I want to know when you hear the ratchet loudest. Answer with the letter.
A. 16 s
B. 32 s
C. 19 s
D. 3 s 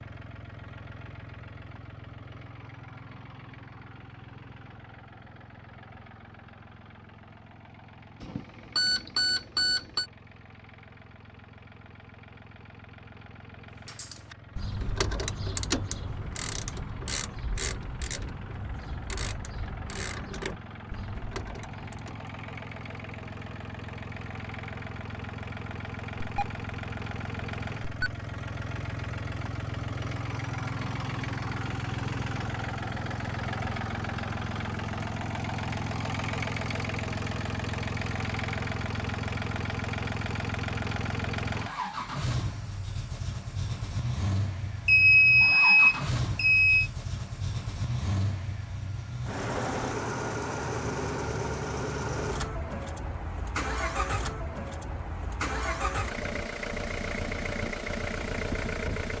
A.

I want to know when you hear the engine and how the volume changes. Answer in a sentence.
You can hear the engine from 0.0 to 59.1 s, getting louder.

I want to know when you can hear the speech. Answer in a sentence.
You can't hear the speech here.